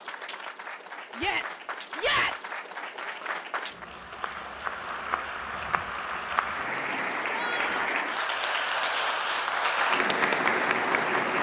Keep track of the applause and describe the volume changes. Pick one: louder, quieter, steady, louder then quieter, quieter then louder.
louder.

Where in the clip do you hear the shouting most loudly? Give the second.
2 s.